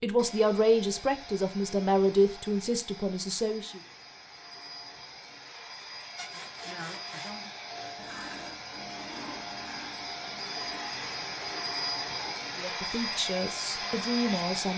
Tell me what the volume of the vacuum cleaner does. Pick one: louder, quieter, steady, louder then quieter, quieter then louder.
louder.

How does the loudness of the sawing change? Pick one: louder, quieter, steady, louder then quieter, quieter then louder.
quieter.